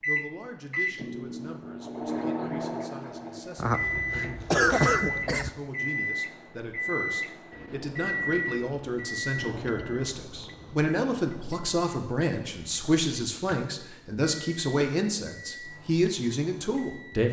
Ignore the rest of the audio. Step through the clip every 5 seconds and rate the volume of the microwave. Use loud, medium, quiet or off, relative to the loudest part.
loud, loud, quiet, quiet.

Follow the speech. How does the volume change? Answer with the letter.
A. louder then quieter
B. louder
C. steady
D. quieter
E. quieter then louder
B.